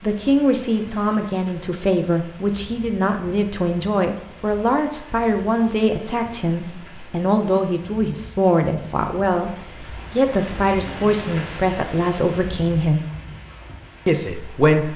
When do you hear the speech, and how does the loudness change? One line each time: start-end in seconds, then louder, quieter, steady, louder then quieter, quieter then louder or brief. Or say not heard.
0.0-13.1 steady
14.1-14.9 brief.